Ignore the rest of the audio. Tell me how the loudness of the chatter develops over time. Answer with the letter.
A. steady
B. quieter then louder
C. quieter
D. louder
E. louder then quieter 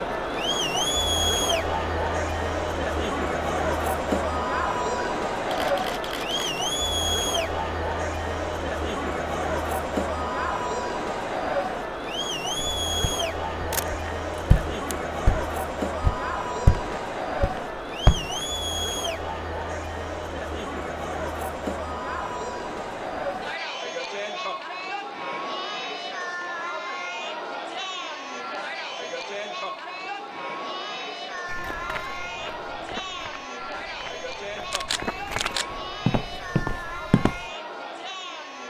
C.